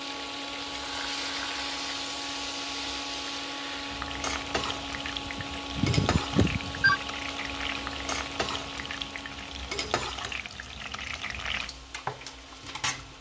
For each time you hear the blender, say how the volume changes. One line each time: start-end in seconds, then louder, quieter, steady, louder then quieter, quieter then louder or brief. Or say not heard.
0.0-13.1 quieter.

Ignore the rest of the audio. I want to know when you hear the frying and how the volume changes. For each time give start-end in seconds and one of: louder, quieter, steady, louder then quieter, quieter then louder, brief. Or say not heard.
0.0-13.1 steady.